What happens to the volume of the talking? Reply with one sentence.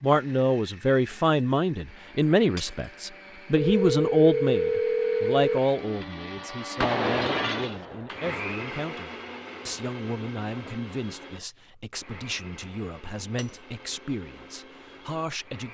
The volume of the talking goes down.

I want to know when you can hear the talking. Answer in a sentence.
The talking can be heard from 0.0 to 15.6 s.